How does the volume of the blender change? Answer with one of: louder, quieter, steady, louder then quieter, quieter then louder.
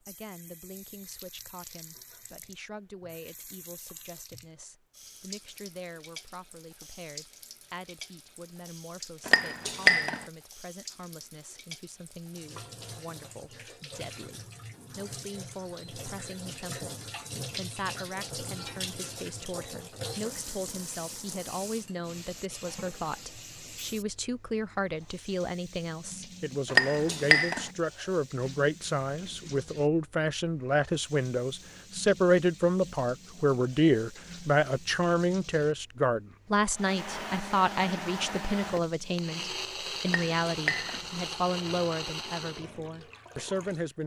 steady.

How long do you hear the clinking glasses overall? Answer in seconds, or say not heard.
3 s.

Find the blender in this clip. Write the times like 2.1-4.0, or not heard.
36.7-42.6.